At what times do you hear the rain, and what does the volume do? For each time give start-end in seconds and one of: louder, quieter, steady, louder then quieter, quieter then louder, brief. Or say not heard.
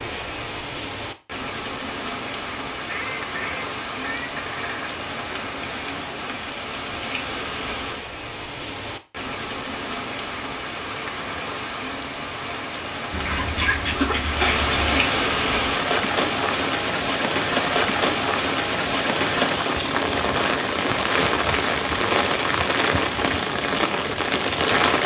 0.0-25.0 louder.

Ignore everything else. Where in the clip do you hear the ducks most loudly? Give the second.
14 s.